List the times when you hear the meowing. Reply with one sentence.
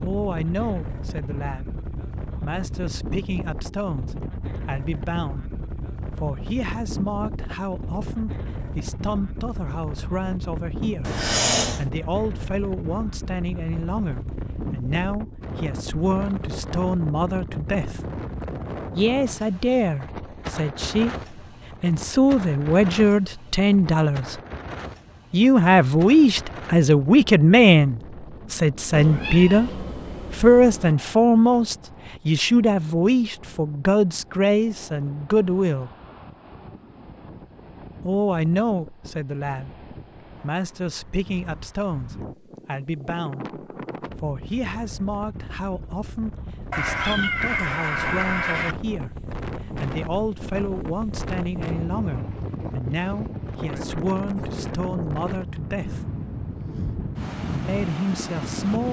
The meowing can be heard from 11.0 to 11.8 s, from 28.9 to 30.9 s and from 46.7 to 48.8 s.